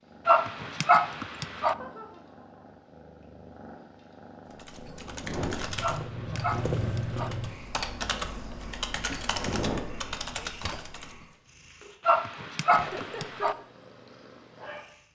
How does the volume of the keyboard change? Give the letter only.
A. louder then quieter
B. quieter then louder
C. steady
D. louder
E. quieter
B.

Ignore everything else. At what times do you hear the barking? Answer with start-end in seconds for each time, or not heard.
0.2-1.8, 5.8-7.3, 12.1-13.6.